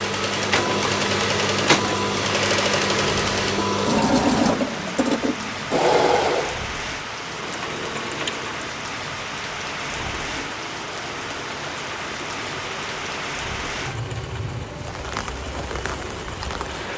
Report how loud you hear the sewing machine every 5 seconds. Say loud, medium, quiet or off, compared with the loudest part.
loud, loud, quiet, quiet.